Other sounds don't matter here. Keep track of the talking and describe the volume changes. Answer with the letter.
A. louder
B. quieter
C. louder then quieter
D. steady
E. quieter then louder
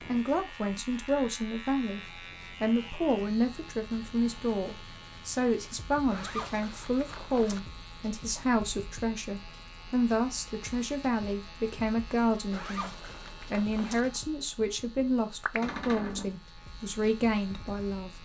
D.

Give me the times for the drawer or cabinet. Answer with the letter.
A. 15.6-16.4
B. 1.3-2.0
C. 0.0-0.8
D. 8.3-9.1
A.